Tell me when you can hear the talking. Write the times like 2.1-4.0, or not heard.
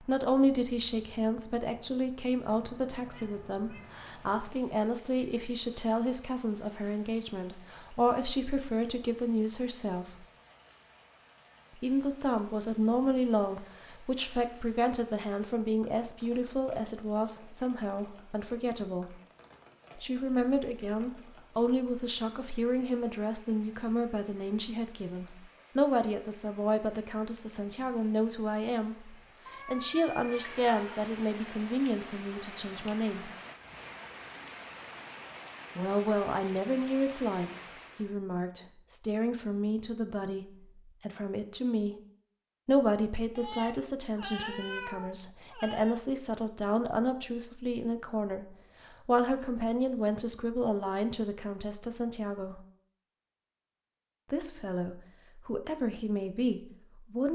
0.0-10.2, 11.8-19.1, 19.9-33.3, 35.8-42.0, 42.6-52.6, 54.3-57.3.